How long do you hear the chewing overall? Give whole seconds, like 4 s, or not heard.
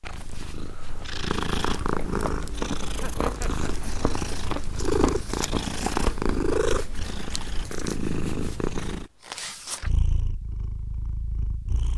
6 s.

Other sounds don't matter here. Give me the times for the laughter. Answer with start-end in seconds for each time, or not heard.
2.9-3.9.